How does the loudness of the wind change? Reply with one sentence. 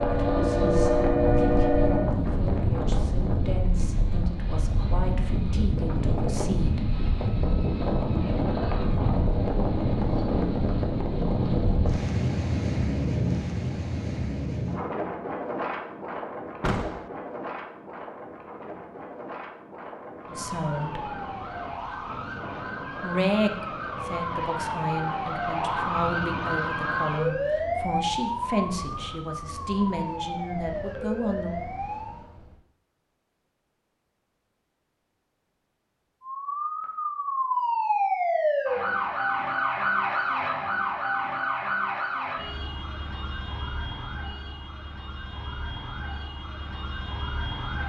The loudness of the wind goes down.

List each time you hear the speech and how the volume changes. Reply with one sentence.
You can hear the speech from 0.0 to 7.0 s, at a steady volume; briefly from 20.3 to 21.1 s; and from 23.0 to 31.6 s, at a steady volume.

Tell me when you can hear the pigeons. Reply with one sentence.
The pigeons can't be heard in this clip.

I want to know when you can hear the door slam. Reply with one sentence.
The door slam can be heard from 16.6 to 17.1 s.